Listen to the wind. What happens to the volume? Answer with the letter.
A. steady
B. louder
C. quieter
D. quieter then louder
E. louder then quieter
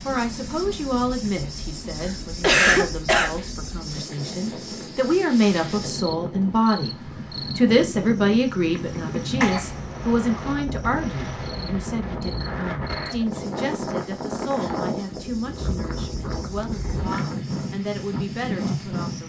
B.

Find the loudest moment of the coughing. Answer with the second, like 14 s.
3 s.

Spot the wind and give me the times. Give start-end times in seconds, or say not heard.
0.0-19.2.